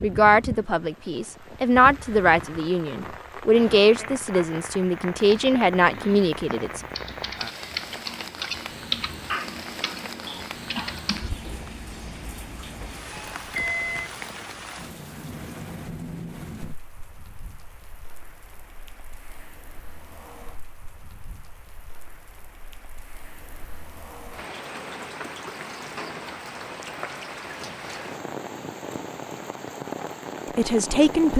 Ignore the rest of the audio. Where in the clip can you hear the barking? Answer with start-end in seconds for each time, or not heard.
not heard.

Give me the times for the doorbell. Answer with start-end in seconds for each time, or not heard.
13.1-14.1.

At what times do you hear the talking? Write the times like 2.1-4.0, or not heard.
0.0-6.8, 30.4-31.3.